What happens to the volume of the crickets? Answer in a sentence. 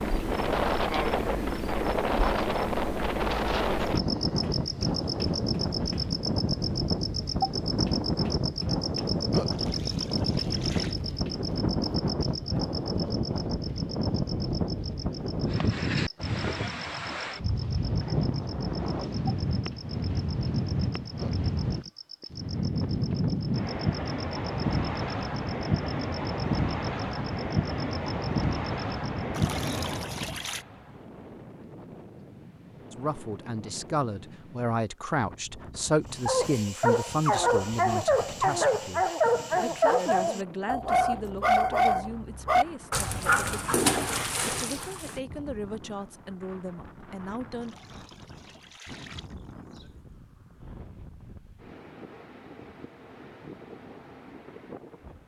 The loudness of the crickets goes down.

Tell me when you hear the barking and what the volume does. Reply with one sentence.
You can hear the barking from 36.2 to 45.2 s, at a steady volume.